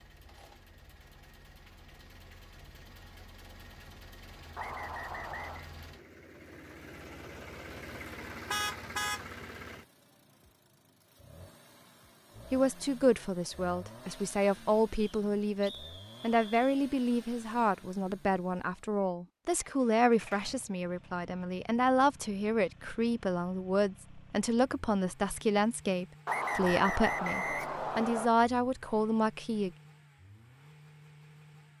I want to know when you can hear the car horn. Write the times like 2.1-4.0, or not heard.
8.5-9.2.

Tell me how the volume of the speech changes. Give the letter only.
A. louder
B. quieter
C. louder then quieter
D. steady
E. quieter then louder
D.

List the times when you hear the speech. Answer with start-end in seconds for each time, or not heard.
12.5-29.7.